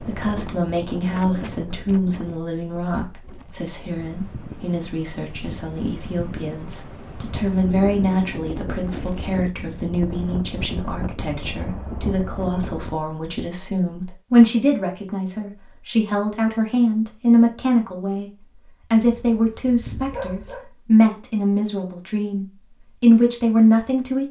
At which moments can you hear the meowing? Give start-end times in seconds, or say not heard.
not heard.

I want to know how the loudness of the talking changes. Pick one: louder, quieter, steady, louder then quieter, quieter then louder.
louder.